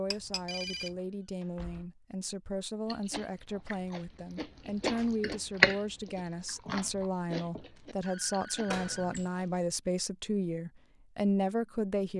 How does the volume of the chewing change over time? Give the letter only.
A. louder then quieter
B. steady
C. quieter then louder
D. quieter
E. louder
A.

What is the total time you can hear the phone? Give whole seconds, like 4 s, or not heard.
3 s.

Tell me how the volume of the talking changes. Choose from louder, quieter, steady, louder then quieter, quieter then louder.
louder.